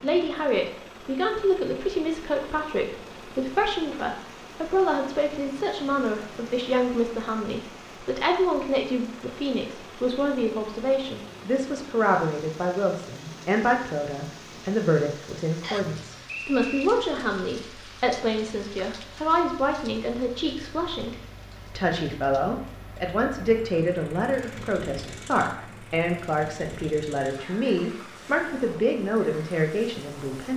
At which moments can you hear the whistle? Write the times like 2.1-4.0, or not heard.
15.6-16.9.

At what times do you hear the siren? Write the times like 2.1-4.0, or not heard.
not heard.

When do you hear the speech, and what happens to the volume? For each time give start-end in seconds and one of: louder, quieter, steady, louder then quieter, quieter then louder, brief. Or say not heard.
0.0-21.1 steady
21.8-30.5 steady.